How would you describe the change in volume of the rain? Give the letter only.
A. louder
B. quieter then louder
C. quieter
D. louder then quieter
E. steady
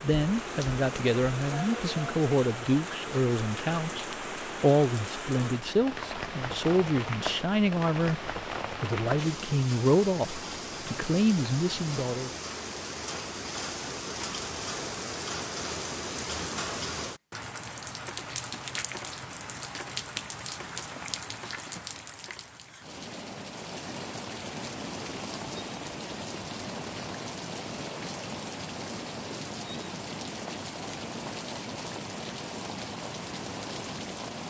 E.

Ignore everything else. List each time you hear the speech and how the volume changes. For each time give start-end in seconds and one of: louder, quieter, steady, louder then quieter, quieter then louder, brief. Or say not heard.
0.0-12.3 steady.